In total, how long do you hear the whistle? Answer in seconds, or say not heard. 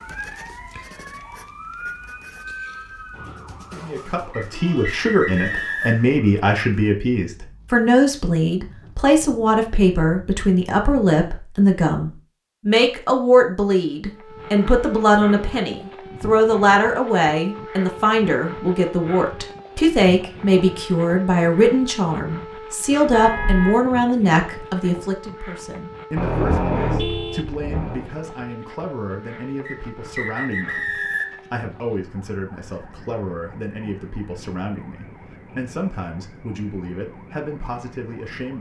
4 s.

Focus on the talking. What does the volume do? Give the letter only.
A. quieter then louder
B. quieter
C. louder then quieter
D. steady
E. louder
B.